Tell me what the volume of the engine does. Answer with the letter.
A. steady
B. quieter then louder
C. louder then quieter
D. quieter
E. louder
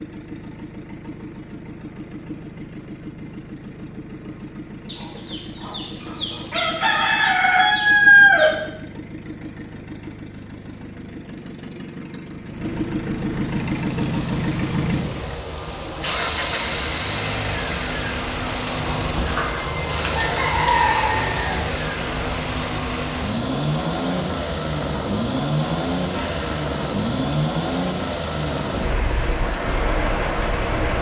E.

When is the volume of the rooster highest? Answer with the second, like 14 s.
8 s.